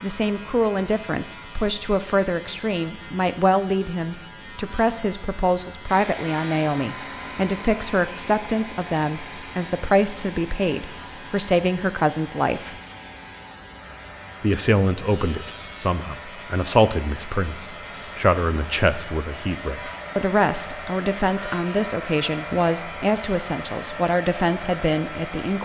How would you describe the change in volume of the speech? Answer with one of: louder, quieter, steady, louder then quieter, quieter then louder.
steady.